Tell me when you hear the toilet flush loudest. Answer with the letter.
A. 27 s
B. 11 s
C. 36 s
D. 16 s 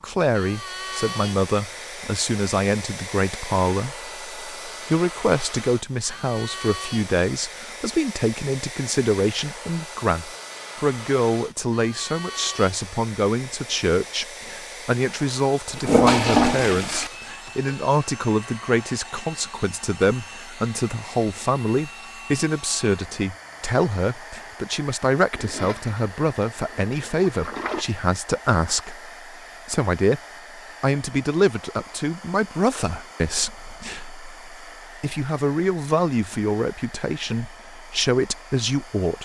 D.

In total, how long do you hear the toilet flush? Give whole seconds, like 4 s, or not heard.
4 s.